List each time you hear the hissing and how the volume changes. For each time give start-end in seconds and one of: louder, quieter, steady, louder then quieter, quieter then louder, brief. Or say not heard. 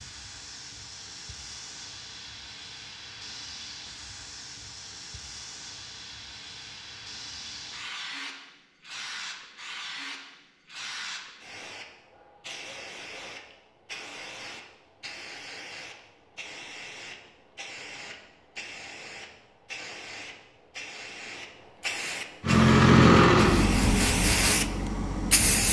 0.0-25.6 louder.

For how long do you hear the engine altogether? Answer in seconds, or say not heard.
3 s.